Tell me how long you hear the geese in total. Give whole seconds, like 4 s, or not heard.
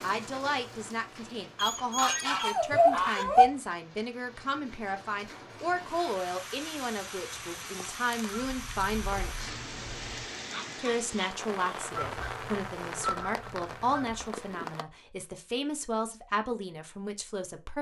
6 s.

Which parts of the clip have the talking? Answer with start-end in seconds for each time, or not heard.
0.0-9.5, 10.8-17.7.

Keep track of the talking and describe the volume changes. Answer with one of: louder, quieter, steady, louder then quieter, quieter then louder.
steady.